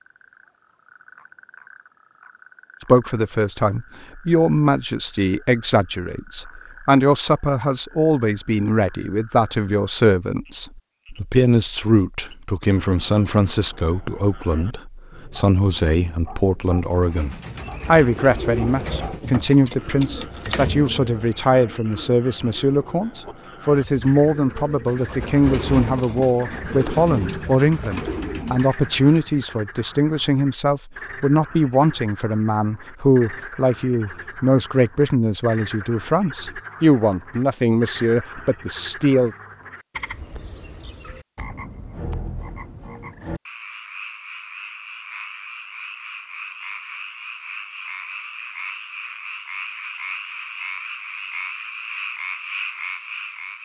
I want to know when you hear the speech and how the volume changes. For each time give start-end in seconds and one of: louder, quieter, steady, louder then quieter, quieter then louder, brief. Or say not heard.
2.8-39.4 steady.